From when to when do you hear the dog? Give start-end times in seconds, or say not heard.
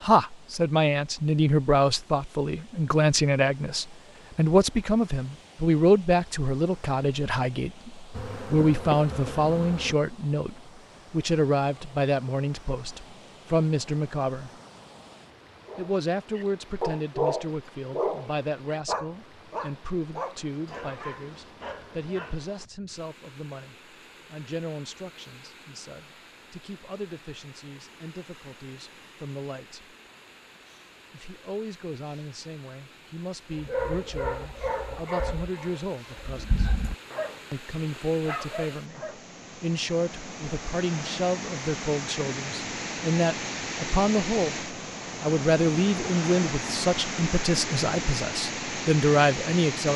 15.7-22.4, 33.5-37.4, 38.2-39.2.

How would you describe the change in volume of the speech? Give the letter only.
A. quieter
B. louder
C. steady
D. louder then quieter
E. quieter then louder
E.